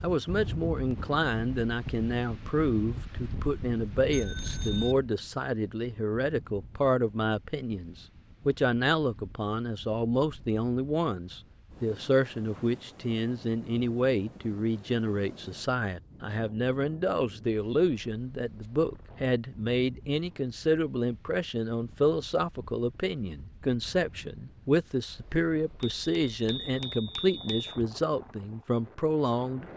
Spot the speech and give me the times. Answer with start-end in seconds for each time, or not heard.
0.0-29.6.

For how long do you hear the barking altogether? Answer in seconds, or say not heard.
not heard.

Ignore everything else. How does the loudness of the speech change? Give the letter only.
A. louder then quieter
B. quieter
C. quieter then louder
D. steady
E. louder
D.